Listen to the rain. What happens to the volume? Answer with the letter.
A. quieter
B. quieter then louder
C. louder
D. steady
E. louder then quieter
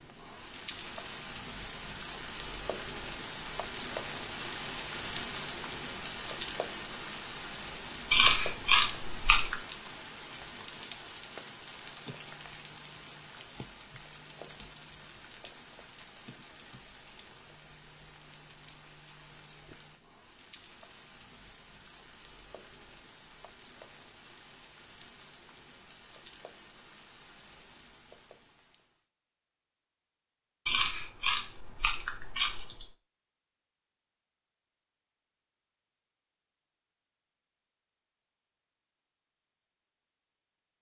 A.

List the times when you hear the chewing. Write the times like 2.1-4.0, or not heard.
8.1-9.6, 30.6-32.9.